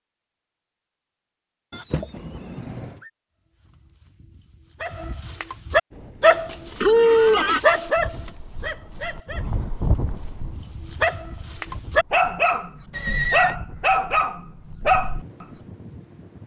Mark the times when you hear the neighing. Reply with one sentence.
You can hear the neighing from 1.7 to 3.0 s, from 6.8 to 7.6 s and from 12.9 to 13.6 s.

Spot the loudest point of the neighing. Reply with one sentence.
The loudest moment of the neighing is at 7 seconds.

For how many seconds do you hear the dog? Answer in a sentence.
You can hear the dog for 12 seconds altogether.